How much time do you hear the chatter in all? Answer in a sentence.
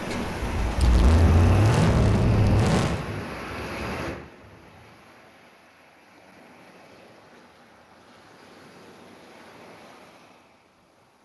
The chatter can't be heard in this clip.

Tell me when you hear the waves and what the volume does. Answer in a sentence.
You can hear the waves from 0.0 to 11.1 s, getting quieter.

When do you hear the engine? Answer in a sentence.
The engine can be heard from 0.0 to 3.0 s.